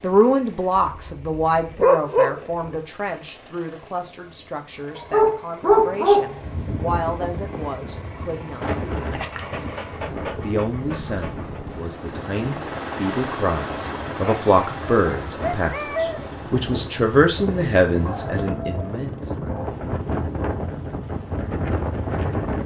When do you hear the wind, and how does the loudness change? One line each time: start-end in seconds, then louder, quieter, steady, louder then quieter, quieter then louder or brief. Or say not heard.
6.2-22.6 quieter then louder.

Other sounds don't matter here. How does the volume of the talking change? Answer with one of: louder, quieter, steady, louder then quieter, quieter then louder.
quieter then louder.